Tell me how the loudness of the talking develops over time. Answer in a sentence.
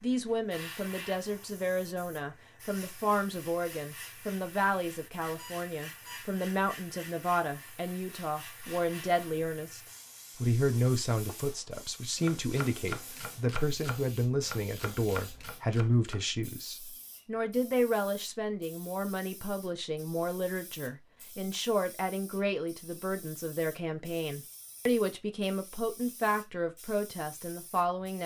The volume of the talking stays about the same.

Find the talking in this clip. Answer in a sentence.
The talking can be heard from 0.0 to 9.8 s and from 10.4 to 28.2 s.